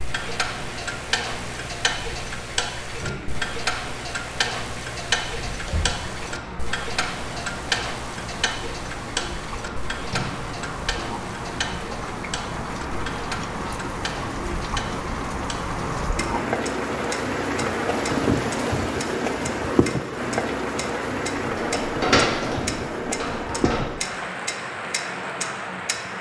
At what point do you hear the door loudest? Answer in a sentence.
The volume of the door peaks at 22 seconds.